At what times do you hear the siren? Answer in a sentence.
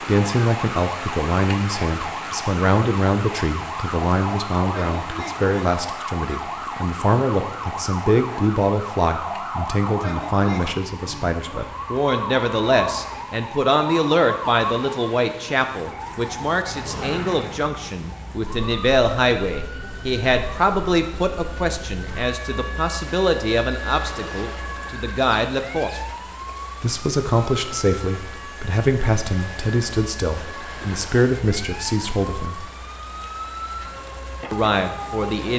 The siren can be heard from 0.0 to 35.5 s.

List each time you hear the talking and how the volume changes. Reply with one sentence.
The talking can be heard from 0.1 to 26.0 s, at a steady volume; from 26.8 to 32.6 s, at a steady volume; and briefly from 34.5 to 35.5 s.